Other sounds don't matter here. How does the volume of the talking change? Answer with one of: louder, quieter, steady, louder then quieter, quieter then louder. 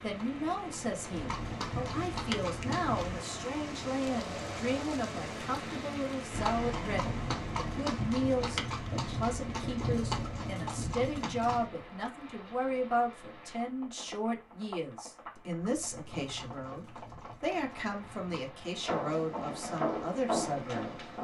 steady.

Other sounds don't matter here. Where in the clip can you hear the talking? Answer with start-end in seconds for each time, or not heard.
0.0-20.9.